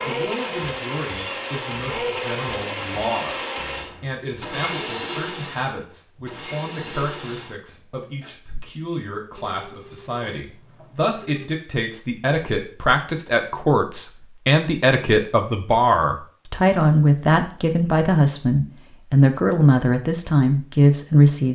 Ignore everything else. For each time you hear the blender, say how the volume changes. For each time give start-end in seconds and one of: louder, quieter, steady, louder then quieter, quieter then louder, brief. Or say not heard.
0.0-8.3 quieter.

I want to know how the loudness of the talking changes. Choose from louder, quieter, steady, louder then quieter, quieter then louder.
louder.